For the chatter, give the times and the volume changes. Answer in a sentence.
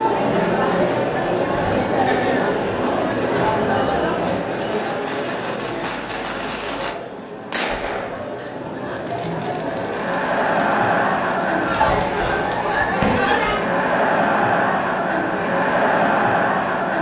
The chatter can be heard from 0.0 to 16.9 s, getting quieter then louder.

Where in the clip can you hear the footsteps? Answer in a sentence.
You can't hear the footsteps here.